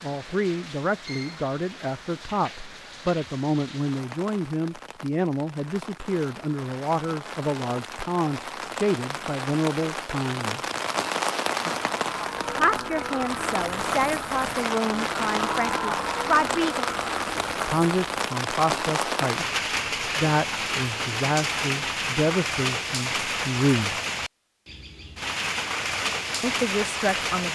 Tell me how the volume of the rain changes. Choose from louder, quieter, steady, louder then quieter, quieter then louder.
louder.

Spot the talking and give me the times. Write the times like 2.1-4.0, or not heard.
0.0-10.6, 12.5-16.9, 17.6-24.0, 26.4-27.5.